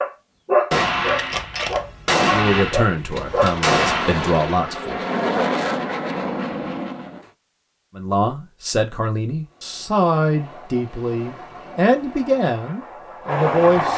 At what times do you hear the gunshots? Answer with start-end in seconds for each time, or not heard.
0.7-4.1.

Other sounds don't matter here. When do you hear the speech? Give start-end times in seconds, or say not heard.
2.2-5.0, 8.0-13.9.